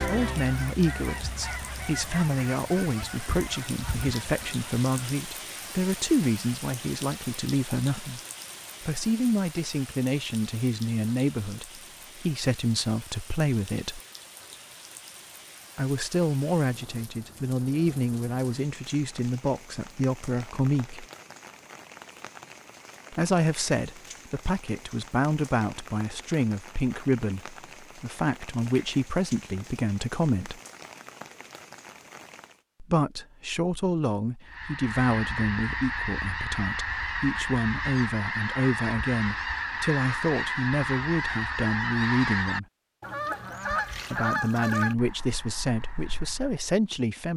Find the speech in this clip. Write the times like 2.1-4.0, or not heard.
0.1-8.2, 8.8-14.0, 15.8-21.1, 23.1-30.6, 32.8-42.6, 44.1-47.3.